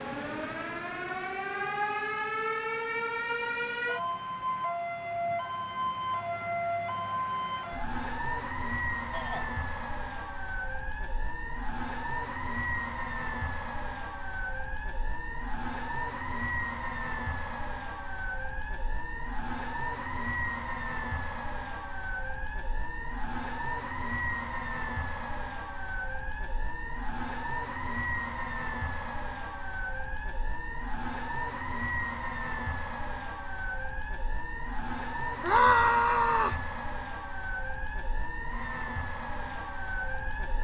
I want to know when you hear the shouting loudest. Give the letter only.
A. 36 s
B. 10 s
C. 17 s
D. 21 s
A.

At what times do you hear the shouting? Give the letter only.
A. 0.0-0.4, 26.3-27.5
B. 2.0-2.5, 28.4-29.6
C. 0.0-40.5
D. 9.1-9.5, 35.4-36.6
D.